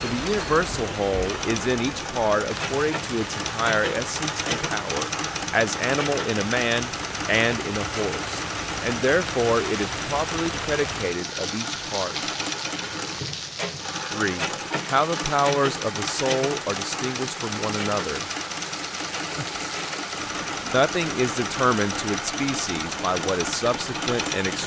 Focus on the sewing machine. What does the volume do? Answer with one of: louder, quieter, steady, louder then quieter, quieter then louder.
steady.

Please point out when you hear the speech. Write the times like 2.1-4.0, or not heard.
0.0-12.2, 14.1-18.2, 20.7-24.6.